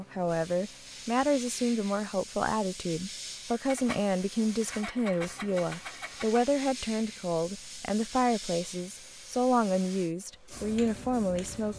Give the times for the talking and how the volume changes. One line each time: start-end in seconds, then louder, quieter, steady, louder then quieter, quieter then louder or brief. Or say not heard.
0.0-11.7 steady.